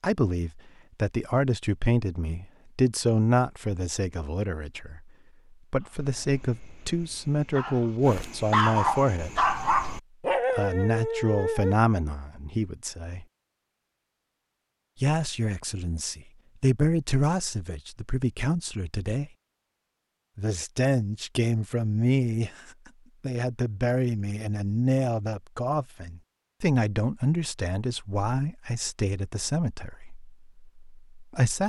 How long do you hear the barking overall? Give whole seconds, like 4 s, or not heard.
6 s.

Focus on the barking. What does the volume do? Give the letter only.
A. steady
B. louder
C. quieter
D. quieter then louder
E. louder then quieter
B.